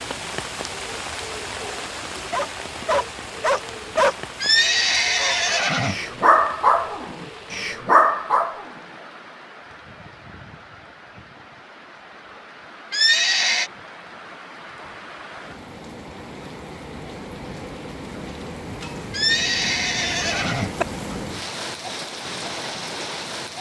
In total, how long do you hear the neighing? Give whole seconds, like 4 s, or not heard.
4 s.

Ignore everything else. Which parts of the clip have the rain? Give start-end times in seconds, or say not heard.
0.0-23.5.